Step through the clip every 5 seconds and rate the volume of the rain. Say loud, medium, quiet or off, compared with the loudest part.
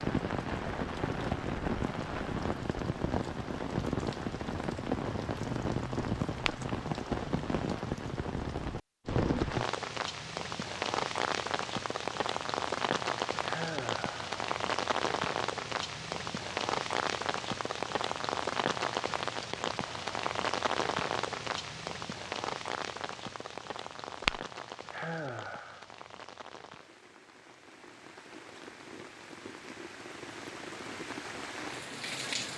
loud, loud, loud, loud, loud, quiet, medium.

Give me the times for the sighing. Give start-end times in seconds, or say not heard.
13.4-14.2, 24.9-25.9.